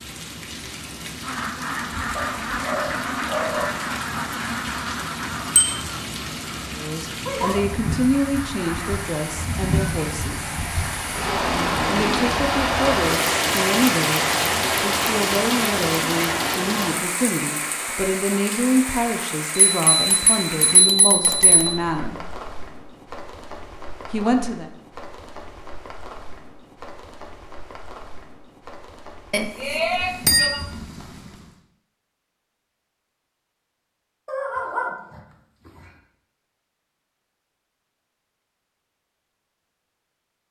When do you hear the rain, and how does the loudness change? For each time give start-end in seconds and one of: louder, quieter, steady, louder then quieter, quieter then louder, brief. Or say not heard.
0.0-31.6 louder then quieter.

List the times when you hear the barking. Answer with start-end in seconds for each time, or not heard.
2.1-3.7, 34.2-35.9.